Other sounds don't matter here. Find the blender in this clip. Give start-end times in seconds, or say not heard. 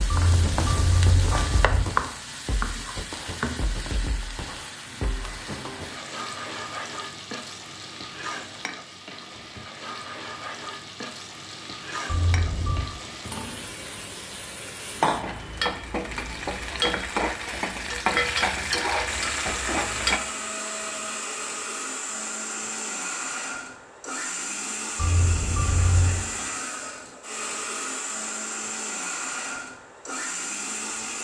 19.1-31.1.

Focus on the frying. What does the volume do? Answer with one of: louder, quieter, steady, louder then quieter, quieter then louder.
quieter then louder.